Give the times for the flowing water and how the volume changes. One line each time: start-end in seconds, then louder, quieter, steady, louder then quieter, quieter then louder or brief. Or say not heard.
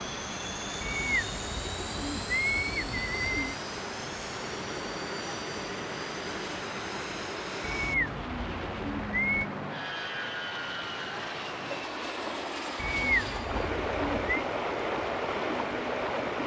0.0-16.4 louder.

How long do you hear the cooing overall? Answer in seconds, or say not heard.
6 s.